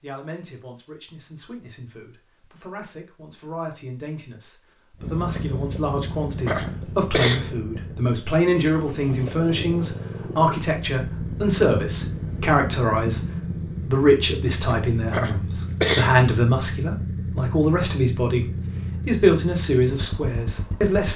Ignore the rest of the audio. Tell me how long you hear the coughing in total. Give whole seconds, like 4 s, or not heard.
3 s.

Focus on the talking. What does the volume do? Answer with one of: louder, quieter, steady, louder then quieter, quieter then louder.
louder.